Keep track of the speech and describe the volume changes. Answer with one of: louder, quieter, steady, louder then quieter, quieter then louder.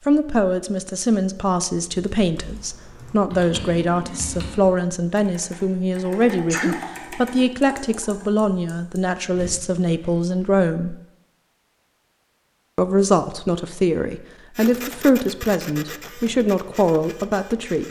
steady.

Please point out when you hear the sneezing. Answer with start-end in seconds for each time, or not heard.
6.0-6.8.